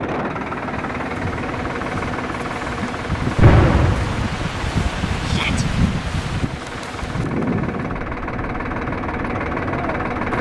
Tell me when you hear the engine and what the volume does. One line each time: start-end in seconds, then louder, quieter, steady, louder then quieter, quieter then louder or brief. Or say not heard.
0.0-10.3 quieter then louder.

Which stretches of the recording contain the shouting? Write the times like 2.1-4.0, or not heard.
5.2-5.7.